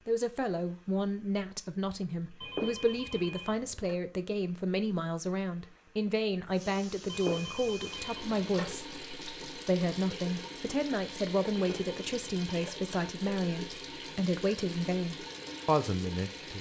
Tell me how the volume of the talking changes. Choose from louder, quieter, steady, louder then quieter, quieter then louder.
steady.